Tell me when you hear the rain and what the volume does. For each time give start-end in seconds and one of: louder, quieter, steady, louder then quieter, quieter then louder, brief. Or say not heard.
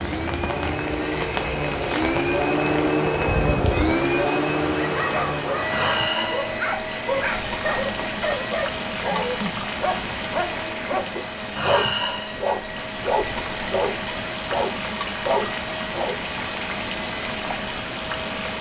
0.0-18.5 steady.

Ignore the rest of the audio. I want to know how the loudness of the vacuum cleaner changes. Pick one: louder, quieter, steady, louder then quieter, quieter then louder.
quieter.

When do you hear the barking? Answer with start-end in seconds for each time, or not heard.
4.7-16.1.